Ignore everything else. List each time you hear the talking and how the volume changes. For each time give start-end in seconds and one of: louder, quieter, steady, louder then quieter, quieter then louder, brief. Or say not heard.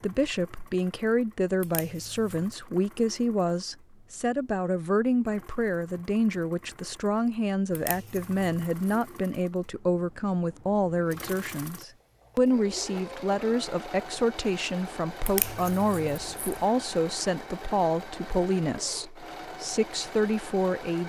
0.0-21.0 steady.